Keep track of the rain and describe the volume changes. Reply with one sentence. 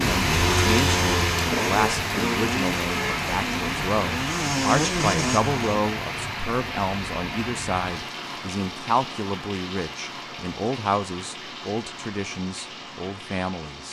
The volume of the rain goes down.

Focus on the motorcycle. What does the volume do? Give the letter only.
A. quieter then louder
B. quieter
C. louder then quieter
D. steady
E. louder
A.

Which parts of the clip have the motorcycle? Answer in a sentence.
You can hear the motorcycle from 0.0 to 5.8 s.